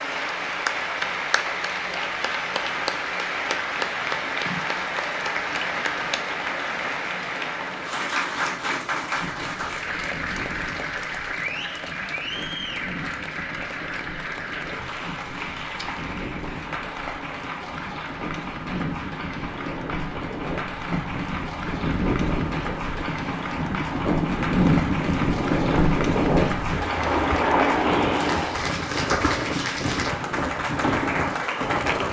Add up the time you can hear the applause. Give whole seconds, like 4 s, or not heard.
32 s.